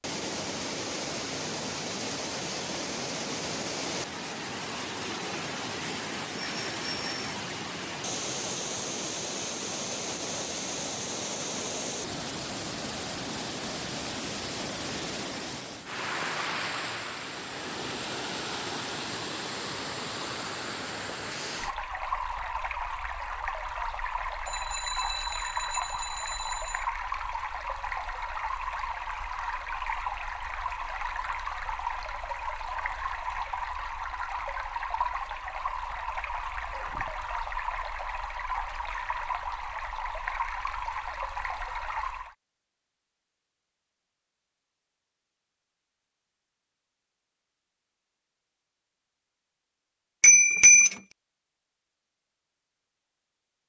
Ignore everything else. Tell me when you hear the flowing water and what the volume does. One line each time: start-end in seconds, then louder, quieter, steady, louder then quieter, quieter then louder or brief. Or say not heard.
0.0-42.4 steady.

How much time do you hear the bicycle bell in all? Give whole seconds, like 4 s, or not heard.
4 s.